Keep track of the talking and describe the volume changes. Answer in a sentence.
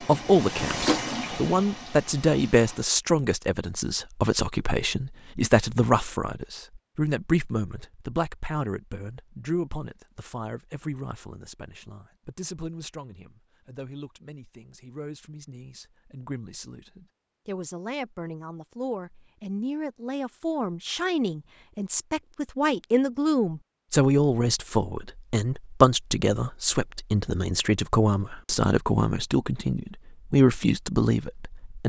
The loudness of the talking goes down, then up.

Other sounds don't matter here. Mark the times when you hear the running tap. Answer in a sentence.
You can hear the running tap from 0.0 to 2.9 s.